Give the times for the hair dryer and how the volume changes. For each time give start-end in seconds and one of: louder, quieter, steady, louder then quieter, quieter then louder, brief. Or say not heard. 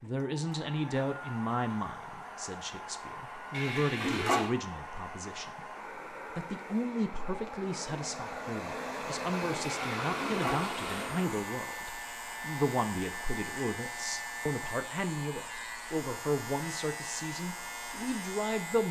0.0-18.8 louder then quieter.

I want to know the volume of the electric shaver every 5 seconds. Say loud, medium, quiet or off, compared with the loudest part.
off, off, loud, loud.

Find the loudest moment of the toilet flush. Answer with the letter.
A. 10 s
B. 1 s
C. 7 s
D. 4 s
D.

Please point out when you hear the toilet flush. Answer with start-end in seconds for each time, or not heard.
3.5-4.5, 9.9-11.1.